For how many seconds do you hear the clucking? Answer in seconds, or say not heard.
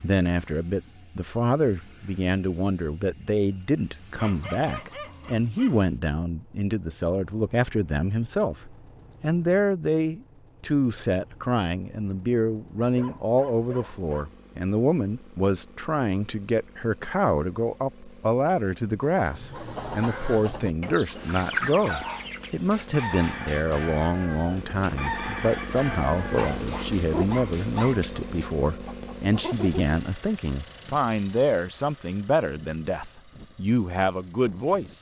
11 s.